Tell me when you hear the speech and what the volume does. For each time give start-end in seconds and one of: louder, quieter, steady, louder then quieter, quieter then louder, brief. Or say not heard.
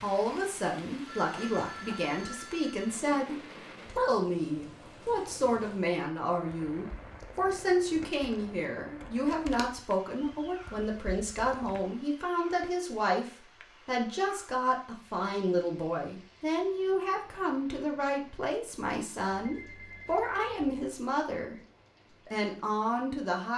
0.0-23.5 steady.